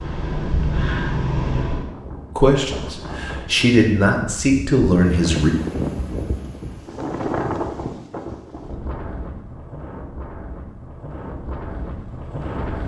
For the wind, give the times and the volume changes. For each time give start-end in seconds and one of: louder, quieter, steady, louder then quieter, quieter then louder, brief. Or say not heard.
0.0-12.8 louder then quieter.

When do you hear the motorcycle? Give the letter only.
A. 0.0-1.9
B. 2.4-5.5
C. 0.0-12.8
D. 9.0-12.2
A.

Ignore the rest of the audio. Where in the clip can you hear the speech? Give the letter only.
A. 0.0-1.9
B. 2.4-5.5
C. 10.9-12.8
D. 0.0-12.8
B.